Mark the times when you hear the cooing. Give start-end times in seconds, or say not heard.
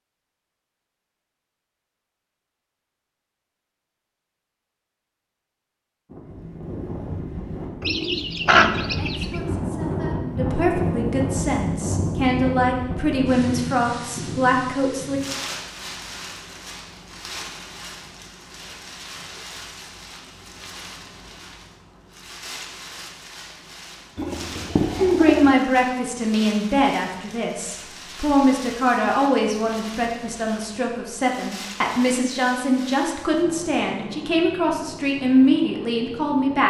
7.8-9.3, 24.1-25.6.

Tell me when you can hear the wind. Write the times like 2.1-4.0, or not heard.
6.0-36.6.